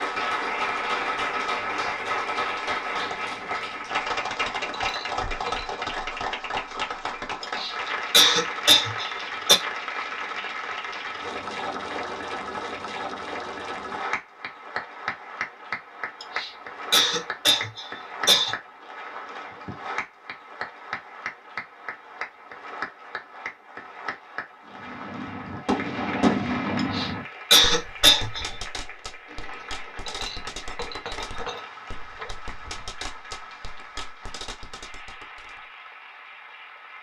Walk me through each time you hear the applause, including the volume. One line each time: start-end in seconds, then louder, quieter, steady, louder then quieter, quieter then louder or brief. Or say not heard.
0.0-36.9 quieter.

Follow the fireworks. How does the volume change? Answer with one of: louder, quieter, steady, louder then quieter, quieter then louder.
quieter.